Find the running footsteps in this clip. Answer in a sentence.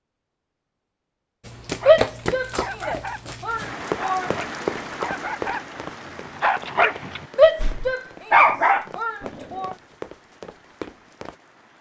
The running footsteps can be heard from 1.4 to 11.3 s.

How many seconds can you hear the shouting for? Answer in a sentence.
You can hear the shouting for 5 seconds altogether.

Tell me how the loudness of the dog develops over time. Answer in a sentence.
The volume of the dog goes up.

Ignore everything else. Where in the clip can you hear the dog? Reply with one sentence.
The dog can be heard from 1.7 to 9.7 s.